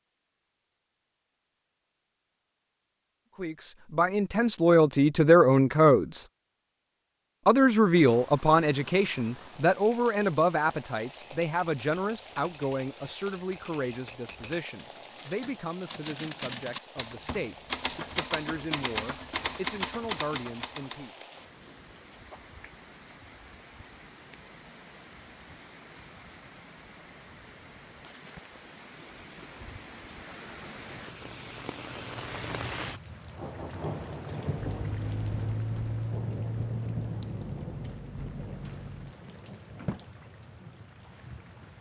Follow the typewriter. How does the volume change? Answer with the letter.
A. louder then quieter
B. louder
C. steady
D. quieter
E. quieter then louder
B.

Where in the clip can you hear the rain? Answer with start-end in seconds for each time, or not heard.
7.9-41.7.